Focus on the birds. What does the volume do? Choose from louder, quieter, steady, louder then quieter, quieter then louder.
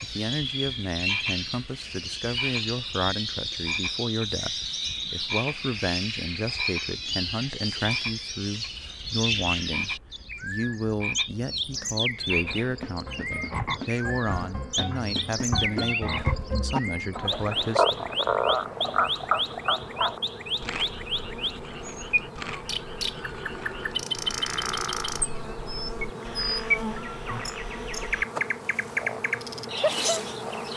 steady.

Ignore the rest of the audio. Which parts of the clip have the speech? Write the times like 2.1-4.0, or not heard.
0.0-18.1.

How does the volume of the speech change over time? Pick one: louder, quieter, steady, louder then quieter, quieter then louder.
steady.